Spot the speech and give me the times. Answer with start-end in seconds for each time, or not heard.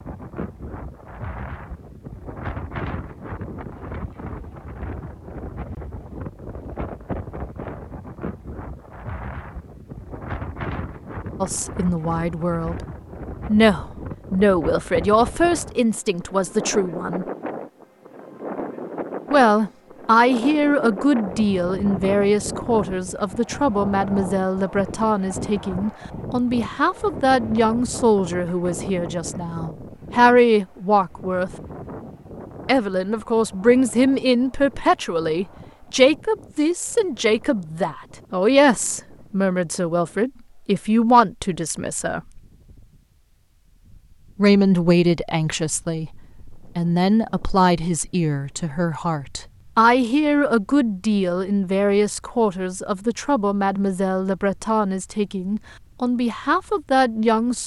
11.4-12.8, 13.4-17.2, 19.3-31.5, 32.6-42.2, 44.4-57.6.